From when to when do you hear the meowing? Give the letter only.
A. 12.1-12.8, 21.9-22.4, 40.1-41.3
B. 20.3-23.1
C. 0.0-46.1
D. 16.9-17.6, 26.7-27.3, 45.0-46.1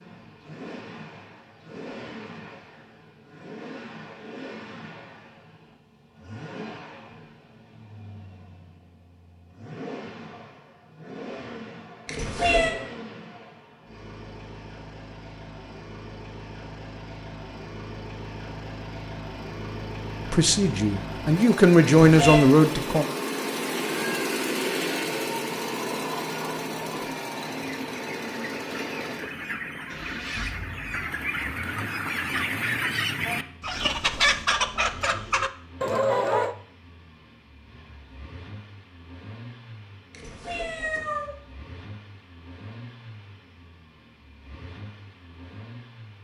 A.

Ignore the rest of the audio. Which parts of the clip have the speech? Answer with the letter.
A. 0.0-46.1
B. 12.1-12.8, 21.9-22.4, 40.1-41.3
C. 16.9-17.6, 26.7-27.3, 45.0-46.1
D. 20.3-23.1
D.